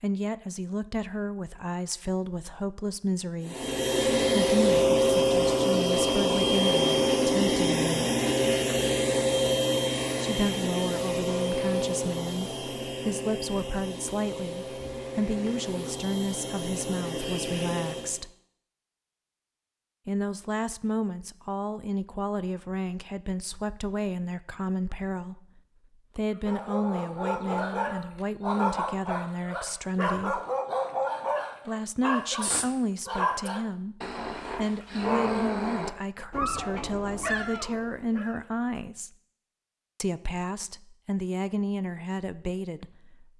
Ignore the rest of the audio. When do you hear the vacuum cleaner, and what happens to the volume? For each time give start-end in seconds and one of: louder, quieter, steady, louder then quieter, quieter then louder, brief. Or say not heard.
3.4-18.2 quieter.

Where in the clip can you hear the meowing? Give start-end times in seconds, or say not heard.
not heard.